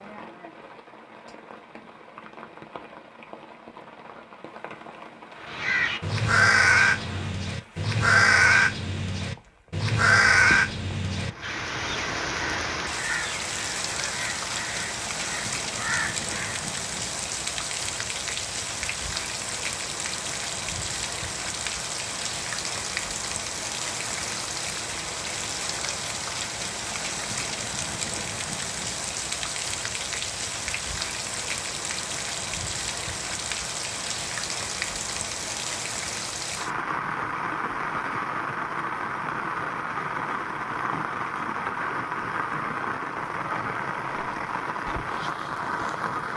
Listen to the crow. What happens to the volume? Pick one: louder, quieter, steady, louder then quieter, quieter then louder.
quieter.